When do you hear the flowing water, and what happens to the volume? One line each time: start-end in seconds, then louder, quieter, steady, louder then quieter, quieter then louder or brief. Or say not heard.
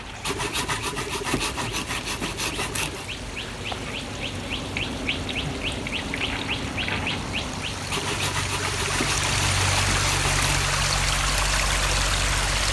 0.0-12.6 louder.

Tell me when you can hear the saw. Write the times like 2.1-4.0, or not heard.
0.2-3.1, 7.9-10.7.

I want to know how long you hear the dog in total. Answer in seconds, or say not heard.
not heard.